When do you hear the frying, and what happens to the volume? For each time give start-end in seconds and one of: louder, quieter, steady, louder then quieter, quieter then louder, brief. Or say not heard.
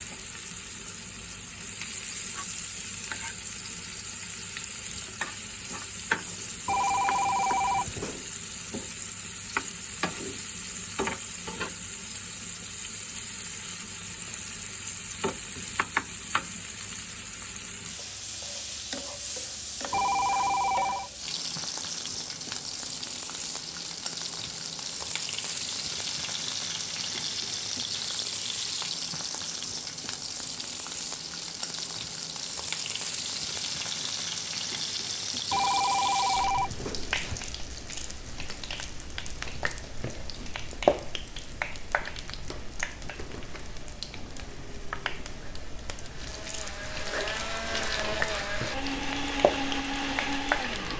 0.0-50.9 steady.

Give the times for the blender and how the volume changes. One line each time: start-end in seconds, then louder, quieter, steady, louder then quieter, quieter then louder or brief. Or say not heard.
44.4-50.9 louder.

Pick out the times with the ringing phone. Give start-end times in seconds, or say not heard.
6.7-8.3, 19.9-21.1, 35.5-37.5.